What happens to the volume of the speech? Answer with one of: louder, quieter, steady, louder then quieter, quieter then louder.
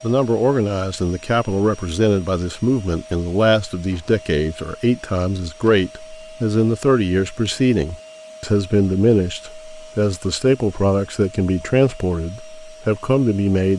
steady.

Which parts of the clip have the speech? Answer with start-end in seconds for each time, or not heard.
0.0-13.7.